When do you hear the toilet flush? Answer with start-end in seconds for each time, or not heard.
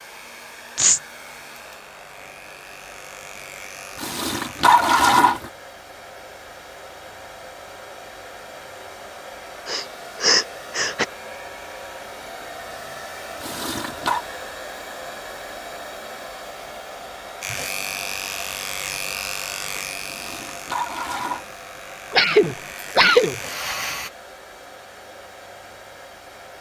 4.0-5.5, 13.4-14.2, 20.1-21.4.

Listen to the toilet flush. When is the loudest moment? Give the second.
5 s.